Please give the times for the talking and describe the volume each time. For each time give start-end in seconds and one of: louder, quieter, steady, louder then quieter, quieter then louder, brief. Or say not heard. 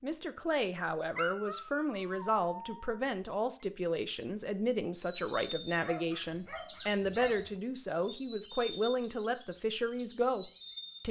0.0-11.0 steady.